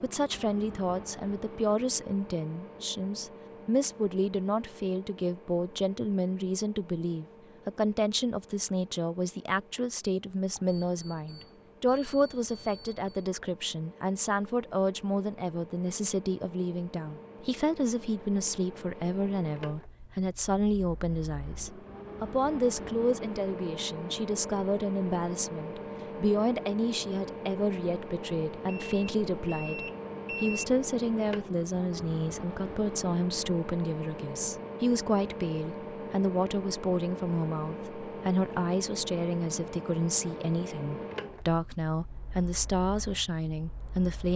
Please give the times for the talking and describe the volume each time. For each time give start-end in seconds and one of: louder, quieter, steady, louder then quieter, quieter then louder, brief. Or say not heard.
0.0-44.3 steady.